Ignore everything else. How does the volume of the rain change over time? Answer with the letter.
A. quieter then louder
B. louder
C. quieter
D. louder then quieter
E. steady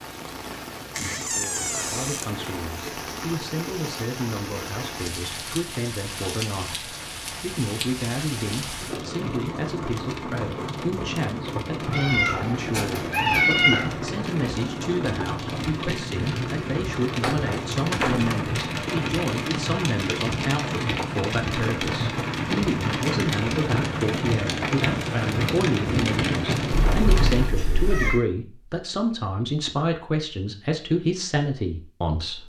B.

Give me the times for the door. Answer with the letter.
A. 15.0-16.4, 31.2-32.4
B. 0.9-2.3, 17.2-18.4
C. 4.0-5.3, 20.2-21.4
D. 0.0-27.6
B.